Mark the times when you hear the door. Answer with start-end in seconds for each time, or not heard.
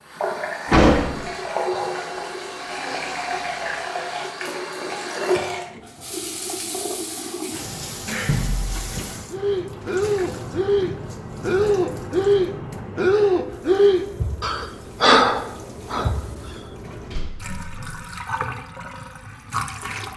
0.7-1.2, 8.2-9.1, 16.9-17.9.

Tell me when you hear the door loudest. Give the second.
1 s.